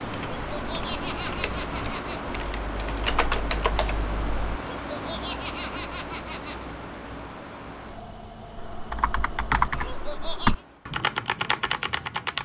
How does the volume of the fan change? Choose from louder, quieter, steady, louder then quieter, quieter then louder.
quieter.